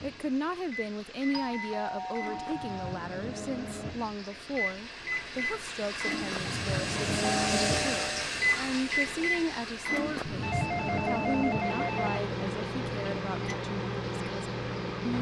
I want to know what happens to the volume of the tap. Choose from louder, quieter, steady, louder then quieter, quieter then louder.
louder then quieter.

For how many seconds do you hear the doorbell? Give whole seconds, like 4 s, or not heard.
4 s.